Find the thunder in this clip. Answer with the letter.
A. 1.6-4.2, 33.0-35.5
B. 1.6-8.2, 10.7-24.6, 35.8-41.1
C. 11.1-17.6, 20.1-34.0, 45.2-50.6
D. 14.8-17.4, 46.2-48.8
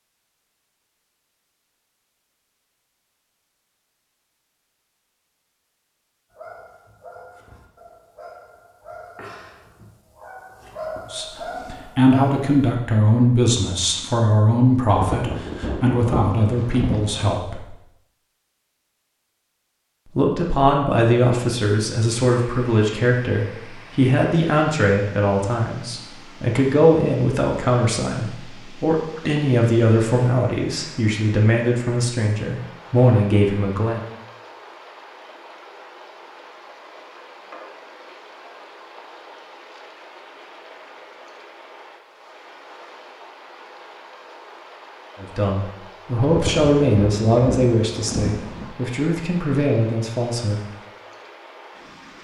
D.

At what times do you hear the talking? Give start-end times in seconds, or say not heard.
11.1-17.6, 20.1-34.0, 45.2-50.6.